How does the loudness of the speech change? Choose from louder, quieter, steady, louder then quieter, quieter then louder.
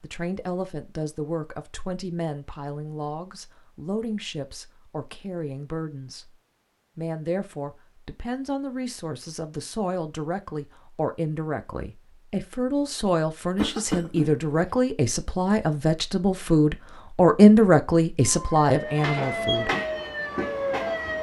louder.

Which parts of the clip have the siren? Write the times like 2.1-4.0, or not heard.
18.2-21.1.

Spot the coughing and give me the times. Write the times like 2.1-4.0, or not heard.
13.6-14.3.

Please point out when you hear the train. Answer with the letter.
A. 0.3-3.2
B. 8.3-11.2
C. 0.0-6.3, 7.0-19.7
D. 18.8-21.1
D.